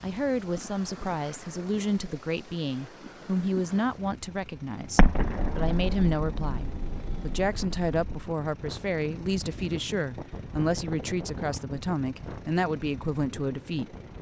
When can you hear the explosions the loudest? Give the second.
5 s.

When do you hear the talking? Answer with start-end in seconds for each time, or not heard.
0.0-13.9.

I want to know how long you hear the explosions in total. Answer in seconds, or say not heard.
3 s.